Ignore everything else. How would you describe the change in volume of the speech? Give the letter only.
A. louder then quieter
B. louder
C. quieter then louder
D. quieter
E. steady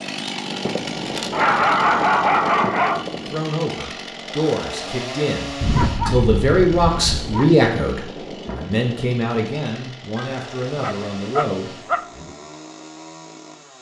A.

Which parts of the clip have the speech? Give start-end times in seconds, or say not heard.
3.1-12.3.